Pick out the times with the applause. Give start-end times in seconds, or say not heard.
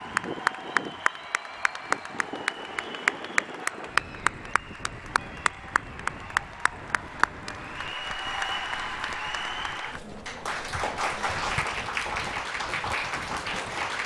0.0-14.0.